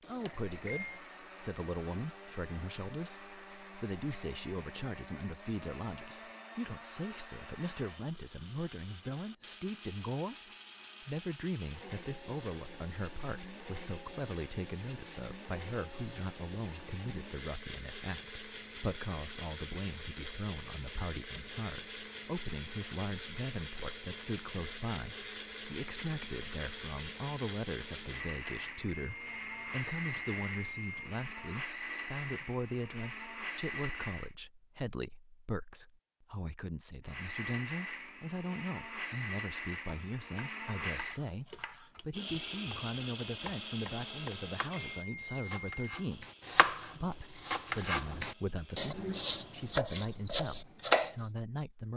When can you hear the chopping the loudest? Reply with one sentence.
The loudest moment of the chopping is at 51 seconds.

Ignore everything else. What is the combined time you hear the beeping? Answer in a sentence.
You can hear the beeping for 5 seconds altogether.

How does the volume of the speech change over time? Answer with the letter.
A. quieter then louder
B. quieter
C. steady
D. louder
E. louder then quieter
C.